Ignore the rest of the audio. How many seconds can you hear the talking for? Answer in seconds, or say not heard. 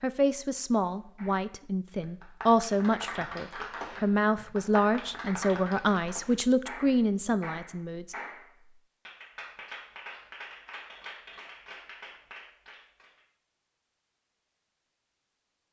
8 s.